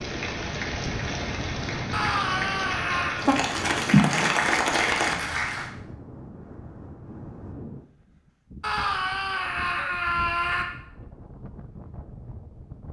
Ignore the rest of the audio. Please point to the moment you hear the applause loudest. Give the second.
4 s.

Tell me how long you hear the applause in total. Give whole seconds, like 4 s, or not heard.
6 s.